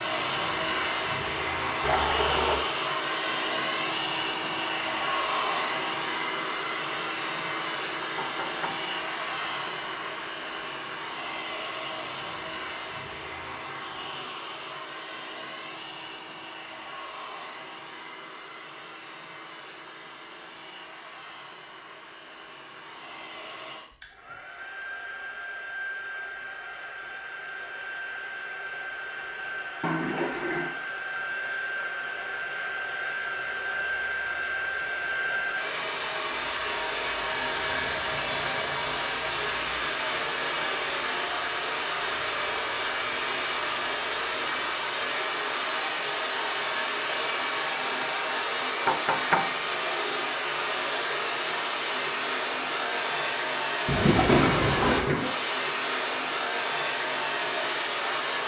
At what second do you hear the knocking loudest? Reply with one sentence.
The volume of the knocking peaks at 49 seconds.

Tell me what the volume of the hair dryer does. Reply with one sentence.
The loudness of the hair dryer goes down, then up.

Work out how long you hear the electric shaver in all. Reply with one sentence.
The electric shaver can't be heard in this clip.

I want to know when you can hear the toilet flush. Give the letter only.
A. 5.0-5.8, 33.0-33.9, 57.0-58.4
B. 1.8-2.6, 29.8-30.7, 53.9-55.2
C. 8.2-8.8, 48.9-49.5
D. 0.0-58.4
B.